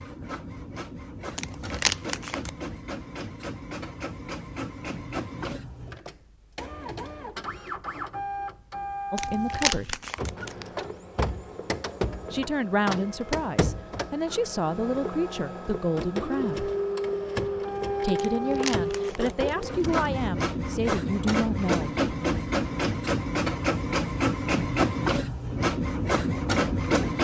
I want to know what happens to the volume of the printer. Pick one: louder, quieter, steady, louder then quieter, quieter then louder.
louder.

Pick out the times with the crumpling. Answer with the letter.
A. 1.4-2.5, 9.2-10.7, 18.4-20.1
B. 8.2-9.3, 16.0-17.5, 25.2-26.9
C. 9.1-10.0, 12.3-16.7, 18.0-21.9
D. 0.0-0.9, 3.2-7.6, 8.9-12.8
A.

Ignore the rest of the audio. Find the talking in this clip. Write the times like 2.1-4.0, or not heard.
9.1-10.0, 12.3-16.7, 18.0-21.9.